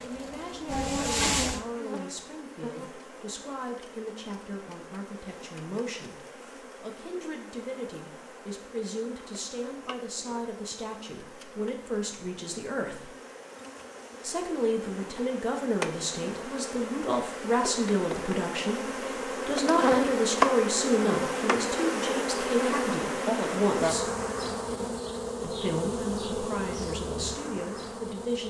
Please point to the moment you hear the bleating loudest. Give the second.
1 s.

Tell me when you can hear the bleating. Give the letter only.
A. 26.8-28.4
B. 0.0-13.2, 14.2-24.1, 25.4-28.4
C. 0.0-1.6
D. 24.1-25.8
C.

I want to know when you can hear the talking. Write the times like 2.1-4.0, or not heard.
0.0-13.2, 14.2-24.1, 25.4-28.4.